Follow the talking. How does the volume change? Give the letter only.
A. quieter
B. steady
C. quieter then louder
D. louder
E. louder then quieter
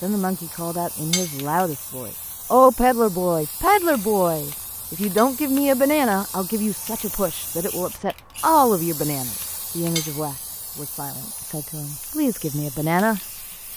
A.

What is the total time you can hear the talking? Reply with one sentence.
You can hear the talking for 13 seconds altogether.